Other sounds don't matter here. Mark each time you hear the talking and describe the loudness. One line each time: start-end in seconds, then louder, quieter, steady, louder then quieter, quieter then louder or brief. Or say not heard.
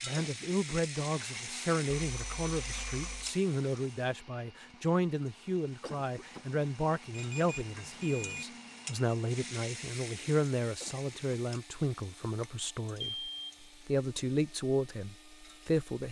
0.0-16.0 steady.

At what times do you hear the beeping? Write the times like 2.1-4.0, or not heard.
1.9-3.4, 7.1-8.4, 13.0-13.7.